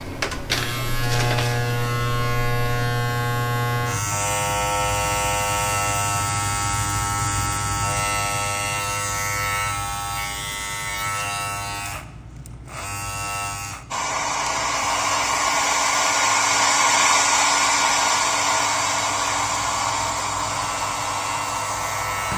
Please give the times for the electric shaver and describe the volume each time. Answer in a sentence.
You can hear the electric shaver from 0.0 to 22.3 s, getting quieter.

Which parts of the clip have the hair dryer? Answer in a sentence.
The hair dryer can be heard from 13.9 to 22.3 s.